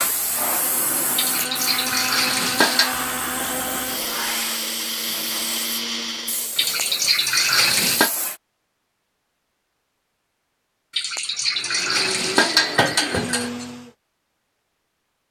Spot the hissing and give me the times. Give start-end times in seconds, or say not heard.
0.0-8.4.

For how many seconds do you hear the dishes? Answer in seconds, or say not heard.
6 s.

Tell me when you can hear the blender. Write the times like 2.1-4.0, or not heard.
0.0-6.6, 11.6-13.9.